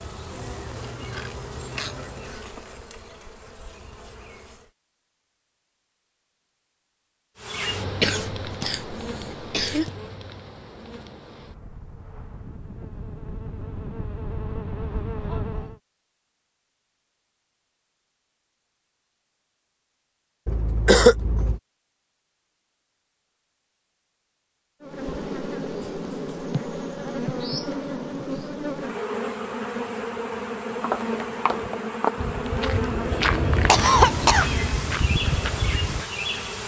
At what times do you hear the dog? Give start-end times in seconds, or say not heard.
not heard.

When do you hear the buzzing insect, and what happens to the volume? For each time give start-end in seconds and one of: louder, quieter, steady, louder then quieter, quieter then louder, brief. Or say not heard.
0.0-4.7 quieter
7.3-15.8 quieter then louder
24.8-36.6 steady.